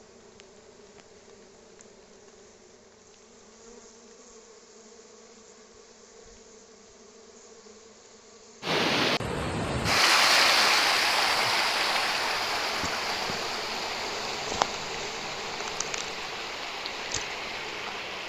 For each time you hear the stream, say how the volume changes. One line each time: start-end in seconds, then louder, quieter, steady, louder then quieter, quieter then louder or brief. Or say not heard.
8.6-18.2 quieter.